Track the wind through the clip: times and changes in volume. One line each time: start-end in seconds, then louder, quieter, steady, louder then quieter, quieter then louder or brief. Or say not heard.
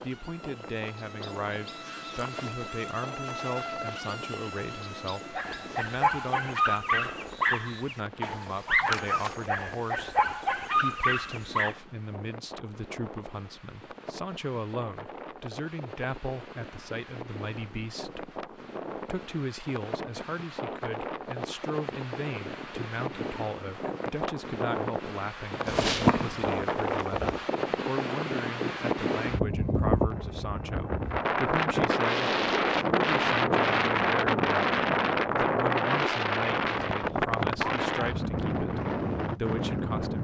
0.0-40.1 louder.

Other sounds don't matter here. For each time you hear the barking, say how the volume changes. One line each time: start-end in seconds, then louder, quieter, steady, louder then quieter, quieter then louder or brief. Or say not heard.
5.3-11.8 steady.